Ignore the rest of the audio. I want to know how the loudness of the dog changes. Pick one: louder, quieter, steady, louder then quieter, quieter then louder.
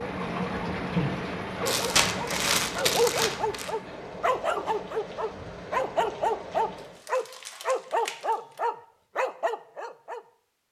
steady.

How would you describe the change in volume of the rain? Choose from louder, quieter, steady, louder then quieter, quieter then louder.
quieter.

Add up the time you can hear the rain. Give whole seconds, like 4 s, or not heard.
7 s.